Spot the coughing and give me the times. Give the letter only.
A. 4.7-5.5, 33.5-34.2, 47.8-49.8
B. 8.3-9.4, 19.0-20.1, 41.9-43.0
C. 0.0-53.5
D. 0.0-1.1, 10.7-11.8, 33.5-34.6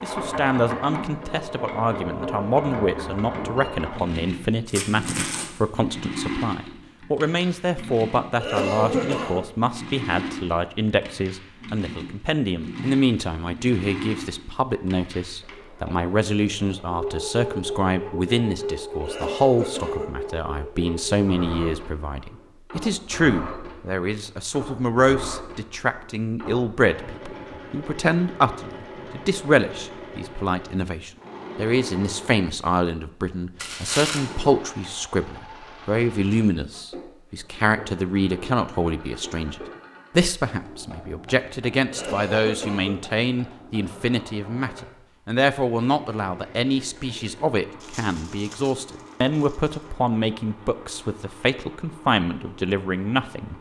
B.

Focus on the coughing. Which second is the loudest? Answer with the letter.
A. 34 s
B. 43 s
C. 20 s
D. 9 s
D.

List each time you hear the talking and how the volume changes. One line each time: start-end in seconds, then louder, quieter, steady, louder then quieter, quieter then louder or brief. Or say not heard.
0.0-53.5 steady.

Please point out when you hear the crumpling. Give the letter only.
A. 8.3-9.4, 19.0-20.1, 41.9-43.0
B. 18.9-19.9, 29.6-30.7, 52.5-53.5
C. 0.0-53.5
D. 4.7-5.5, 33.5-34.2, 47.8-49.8
D.